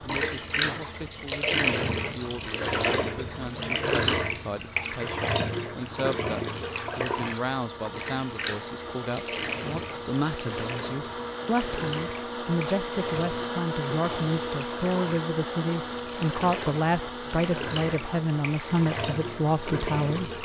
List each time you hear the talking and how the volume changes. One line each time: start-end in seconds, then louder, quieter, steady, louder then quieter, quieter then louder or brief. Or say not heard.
0.0-20.3 louder.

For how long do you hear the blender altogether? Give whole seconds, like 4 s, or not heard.
20 s.